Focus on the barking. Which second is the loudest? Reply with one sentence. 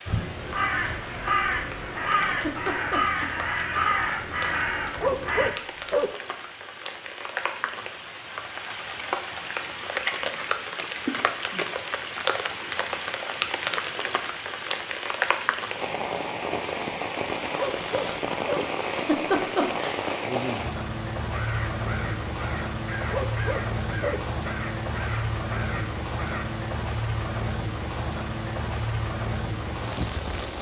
The volume of the barking peaks at 5 seconds.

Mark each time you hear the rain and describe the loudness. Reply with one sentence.
You can hear the rain from 0.0 to 30.5 s, getting louder.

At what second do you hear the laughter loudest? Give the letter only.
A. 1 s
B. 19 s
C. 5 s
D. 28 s
B.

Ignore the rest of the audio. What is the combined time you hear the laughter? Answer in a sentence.
The laughter can be heard for 2 seconds in total.